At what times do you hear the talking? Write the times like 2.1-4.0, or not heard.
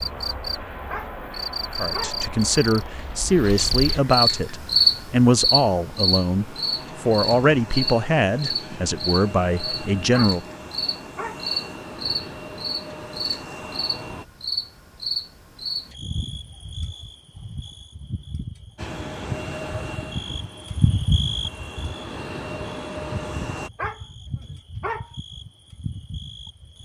1.8-10.4.